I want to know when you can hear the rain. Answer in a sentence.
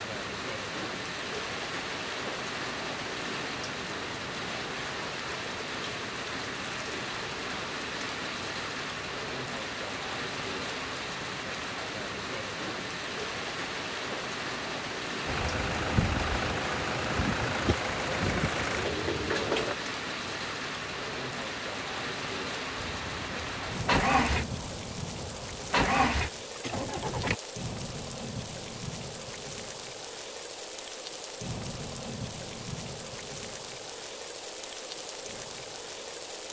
You can hear the rain from 0.0 to 36.4 s.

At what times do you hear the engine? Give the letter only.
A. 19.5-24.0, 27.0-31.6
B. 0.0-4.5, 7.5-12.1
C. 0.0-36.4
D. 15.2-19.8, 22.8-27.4
D.